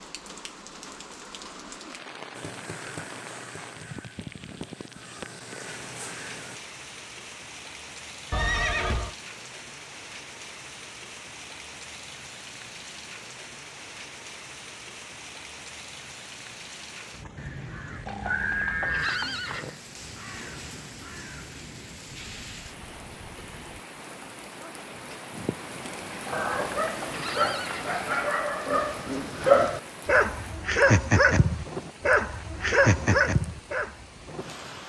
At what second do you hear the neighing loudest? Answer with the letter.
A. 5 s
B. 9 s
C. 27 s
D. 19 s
B.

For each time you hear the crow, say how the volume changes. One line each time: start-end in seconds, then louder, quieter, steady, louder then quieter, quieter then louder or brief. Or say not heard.
2.4-6.6 quieter then louder
17.4-23.9 quieter.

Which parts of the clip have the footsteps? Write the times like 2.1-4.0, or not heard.
not heard.